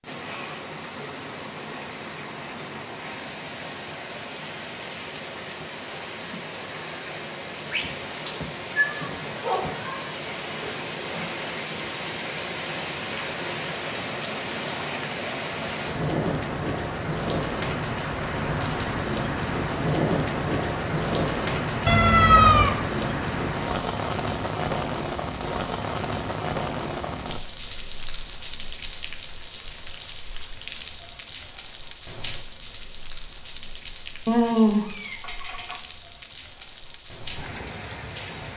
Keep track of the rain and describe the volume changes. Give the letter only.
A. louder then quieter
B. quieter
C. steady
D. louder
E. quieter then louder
A.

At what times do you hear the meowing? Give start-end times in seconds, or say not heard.
7.7-9.7, 21.9-22.8, 34.2-35.8.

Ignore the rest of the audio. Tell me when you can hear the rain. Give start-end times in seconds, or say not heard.
0.0-38.5.